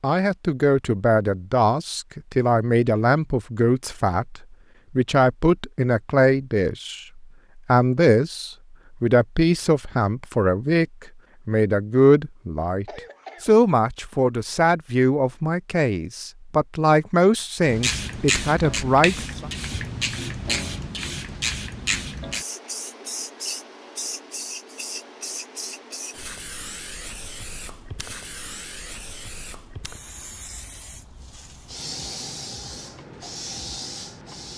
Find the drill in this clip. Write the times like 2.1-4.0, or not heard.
not heard.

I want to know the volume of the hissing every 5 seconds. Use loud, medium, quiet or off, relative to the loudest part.
off, off, off, loud, loud, medium, medium.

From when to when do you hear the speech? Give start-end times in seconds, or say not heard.
0.0-10.8, 11.4-19.4.